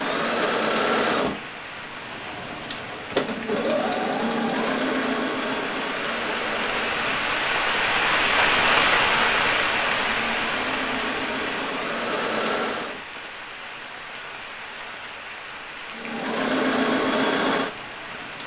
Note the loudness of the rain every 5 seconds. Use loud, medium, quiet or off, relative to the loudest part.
quiet, loud, medium, quiet.